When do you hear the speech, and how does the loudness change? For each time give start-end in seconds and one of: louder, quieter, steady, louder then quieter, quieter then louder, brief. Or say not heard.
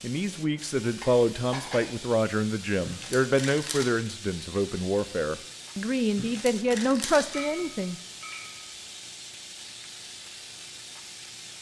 0.0-8.0 steady.